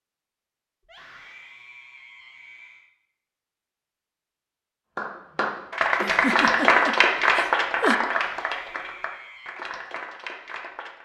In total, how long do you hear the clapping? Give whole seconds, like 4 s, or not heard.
6 s.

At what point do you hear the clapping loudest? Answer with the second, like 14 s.
7 s.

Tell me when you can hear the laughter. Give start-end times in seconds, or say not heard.
6.0-8.0.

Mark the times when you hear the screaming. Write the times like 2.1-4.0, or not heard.
0.8-2.9, 8.1-9.6.